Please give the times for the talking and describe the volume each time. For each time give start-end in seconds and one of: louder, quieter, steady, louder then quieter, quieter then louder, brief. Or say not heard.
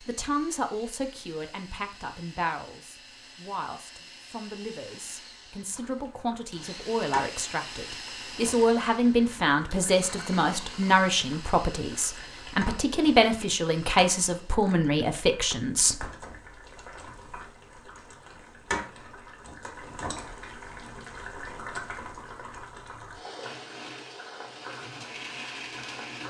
0.1-16.1 louder.